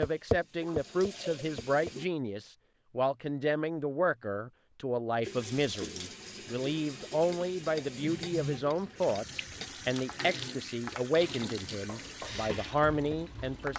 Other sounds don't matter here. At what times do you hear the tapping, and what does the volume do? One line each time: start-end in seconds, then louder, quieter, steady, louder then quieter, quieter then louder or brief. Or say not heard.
0.0-1.9 brief
7.3-13.7 quieter then louder.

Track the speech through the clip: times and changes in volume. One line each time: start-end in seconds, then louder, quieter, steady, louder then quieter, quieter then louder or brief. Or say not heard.
0.0-13.7 steady.